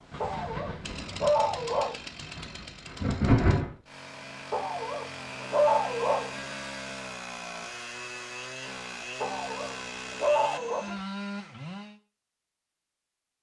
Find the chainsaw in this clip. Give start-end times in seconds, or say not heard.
0.0-12.0.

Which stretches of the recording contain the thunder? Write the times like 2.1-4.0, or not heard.
0.1-3.8.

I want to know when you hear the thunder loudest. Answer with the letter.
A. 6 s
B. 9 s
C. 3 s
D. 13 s
C.